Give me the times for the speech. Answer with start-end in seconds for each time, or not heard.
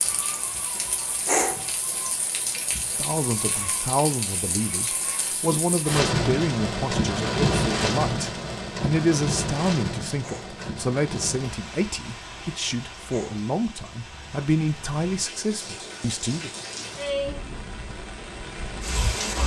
2.8-16.5.